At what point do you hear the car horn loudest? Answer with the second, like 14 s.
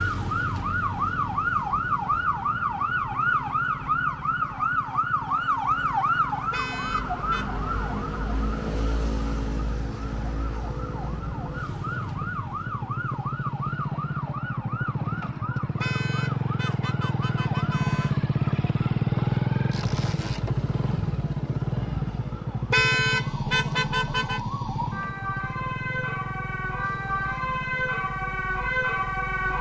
23 s.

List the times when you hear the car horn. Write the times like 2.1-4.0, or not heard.
6.5-7.5, 15.8-18.1, 22.7-24.4.